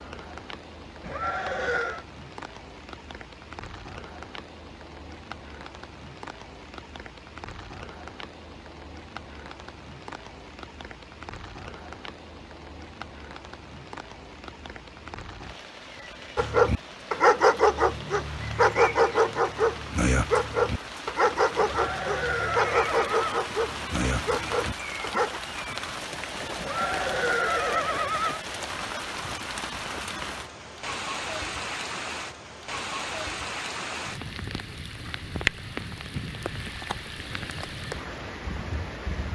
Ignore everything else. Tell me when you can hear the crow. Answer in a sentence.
You can't hear the crow here.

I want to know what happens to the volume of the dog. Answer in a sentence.
The loudness of the dog goes down.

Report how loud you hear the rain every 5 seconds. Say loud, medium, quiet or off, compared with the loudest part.
medium, medium, medium, medium, loud, loud, loud, loud.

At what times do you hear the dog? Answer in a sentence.
The dog can be heard from 16.4 to 25.4 s.